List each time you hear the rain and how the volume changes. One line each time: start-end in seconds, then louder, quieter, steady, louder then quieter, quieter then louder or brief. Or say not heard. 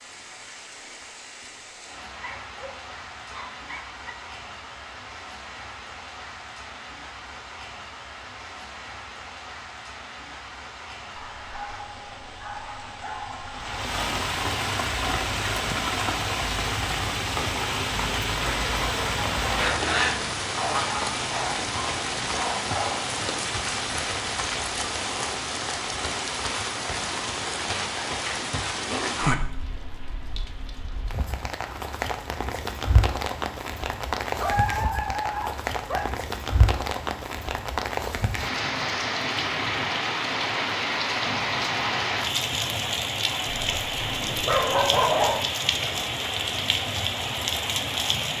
0.0-48.3 louder.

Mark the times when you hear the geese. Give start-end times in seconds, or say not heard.
18.4-20.2.